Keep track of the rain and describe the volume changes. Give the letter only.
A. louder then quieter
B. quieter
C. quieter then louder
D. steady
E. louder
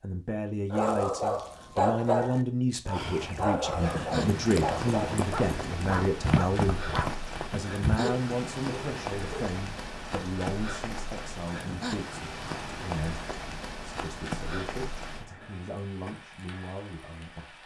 B.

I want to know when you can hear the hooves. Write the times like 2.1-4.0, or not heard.
2.9-8.1.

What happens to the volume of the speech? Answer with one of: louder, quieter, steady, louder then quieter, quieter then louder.
quieter.